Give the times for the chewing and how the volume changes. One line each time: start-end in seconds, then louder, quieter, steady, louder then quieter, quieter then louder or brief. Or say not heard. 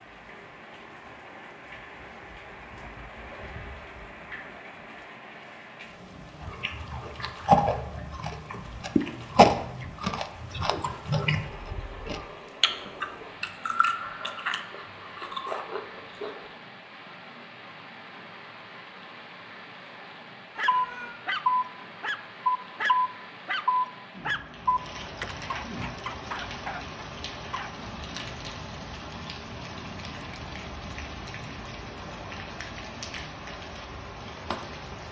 6.4-16.4 quieter.